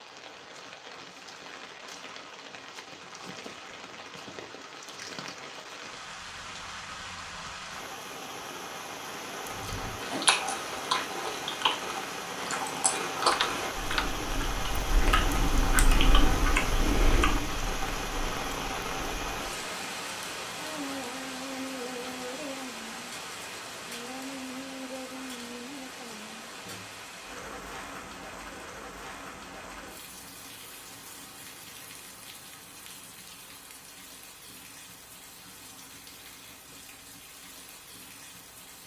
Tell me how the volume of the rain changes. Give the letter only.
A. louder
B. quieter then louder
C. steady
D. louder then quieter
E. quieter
D.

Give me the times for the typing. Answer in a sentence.
You can hear the typing from 13.3 to 14.2 s.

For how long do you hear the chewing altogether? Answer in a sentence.
The chewing can be heard for 10 seconds in total.